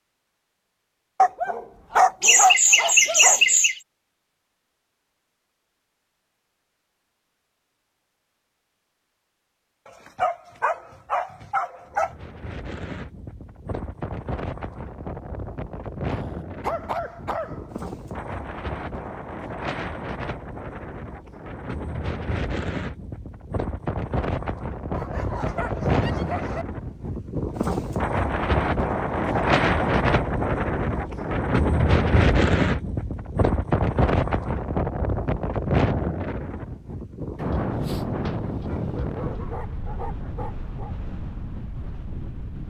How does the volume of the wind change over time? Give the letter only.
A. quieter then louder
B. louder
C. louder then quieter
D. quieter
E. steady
C.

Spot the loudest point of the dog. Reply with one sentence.
The loudest moment of the dog is at 2 seconds.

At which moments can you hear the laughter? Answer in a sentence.
The laughter can be heard from 2.2 to 3.8 s.